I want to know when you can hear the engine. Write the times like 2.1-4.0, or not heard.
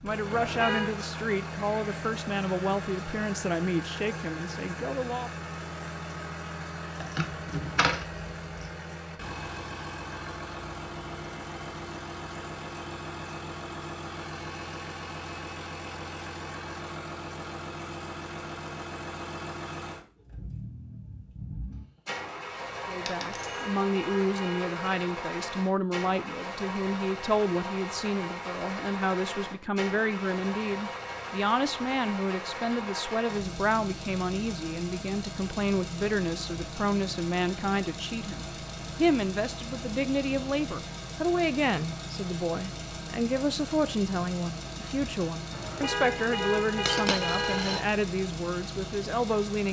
0.0-49.6.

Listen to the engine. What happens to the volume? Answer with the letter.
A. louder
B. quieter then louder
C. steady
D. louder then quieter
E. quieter
C.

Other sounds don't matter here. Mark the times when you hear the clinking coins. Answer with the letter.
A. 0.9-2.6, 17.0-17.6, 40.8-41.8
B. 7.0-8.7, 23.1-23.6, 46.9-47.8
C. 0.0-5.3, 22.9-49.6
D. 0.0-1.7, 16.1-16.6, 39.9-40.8
B.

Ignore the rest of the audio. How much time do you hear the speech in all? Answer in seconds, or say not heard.
32 s.